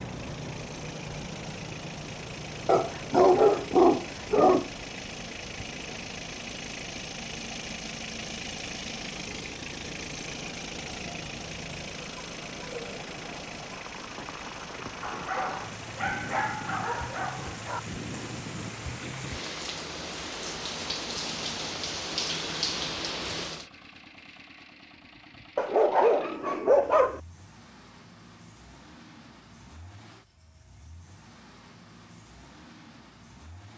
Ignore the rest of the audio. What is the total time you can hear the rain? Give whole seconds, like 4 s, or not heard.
24 s.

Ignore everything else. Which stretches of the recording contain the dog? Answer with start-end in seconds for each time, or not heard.
2.6-4.7, 15.0-17.8, 25.6-27.2.